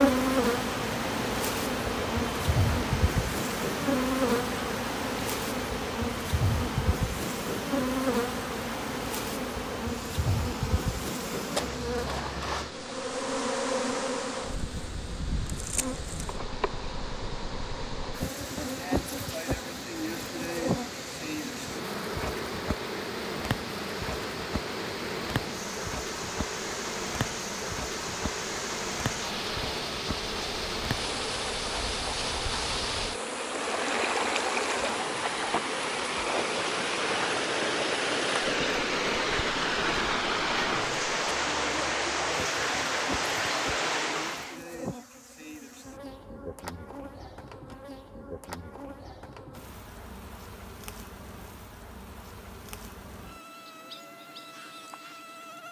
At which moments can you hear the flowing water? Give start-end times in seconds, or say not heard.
0.0-44.6.